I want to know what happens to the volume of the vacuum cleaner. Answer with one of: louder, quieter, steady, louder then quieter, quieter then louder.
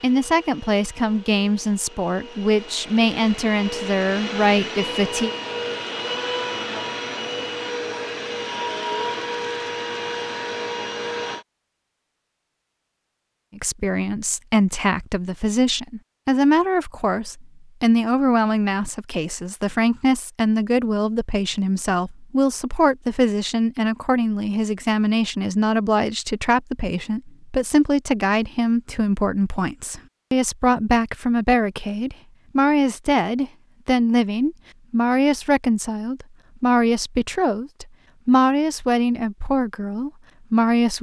louder.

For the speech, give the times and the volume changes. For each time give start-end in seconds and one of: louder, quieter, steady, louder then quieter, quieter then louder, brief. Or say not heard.
0.0-5.3 steady
13.6-40.9 steady.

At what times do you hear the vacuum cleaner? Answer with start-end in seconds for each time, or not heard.
0.0-11.4.